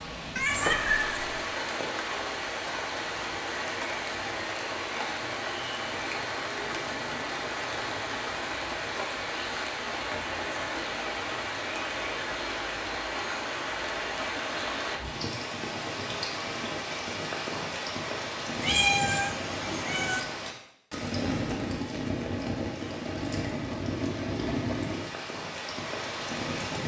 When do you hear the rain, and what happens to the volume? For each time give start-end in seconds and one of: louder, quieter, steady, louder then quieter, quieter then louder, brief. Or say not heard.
0.0-26.8 steady.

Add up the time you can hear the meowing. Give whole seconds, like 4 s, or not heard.
3 s.